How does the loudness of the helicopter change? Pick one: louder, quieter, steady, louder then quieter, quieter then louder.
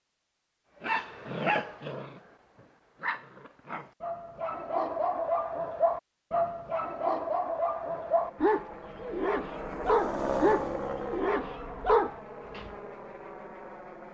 louder then quieter.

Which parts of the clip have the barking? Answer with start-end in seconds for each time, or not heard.
0.8-12.7.